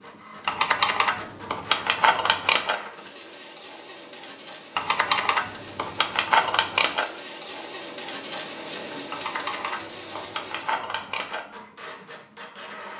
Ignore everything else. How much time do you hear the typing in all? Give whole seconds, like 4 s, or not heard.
7 s.